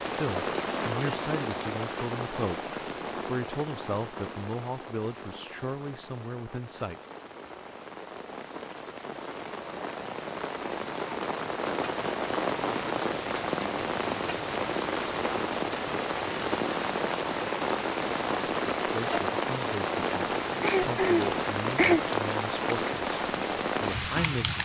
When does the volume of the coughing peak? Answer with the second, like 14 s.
22 s.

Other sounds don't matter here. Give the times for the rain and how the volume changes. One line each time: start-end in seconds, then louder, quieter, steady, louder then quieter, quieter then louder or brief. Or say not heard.
0.0-24.6 quieter then louder.